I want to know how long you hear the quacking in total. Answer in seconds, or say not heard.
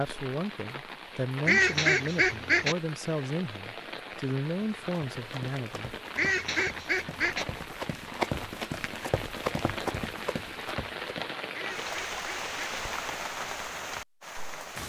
4 s.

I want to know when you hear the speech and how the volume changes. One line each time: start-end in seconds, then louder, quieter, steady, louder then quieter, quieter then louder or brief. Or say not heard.
0.0-6.0 steady.